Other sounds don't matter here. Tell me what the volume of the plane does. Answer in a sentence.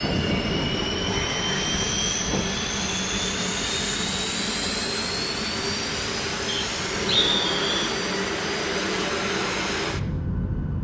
The volume of the plane stays about the same.